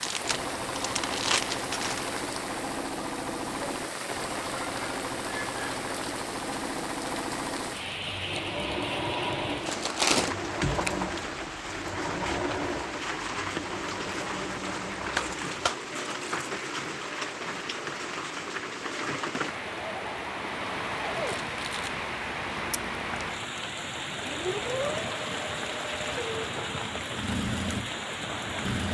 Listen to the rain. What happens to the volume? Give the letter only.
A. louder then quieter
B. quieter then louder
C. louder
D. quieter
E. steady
E.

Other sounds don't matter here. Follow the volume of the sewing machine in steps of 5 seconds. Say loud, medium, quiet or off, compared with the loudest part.
loud, loud, loud, medium, loud, loud.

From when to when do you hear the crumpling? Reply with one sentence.
You can hear the crumpling from 0.0 to 2.1 s, from 9.7 to 10.3 s and from 21.2 to 21.9 s.